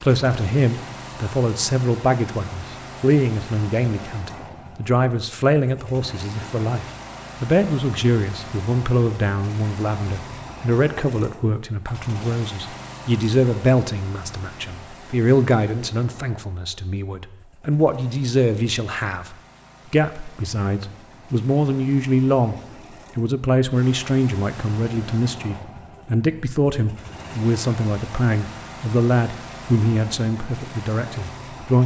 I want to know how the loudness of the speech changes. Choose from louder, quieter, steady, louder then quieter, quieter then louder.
steady.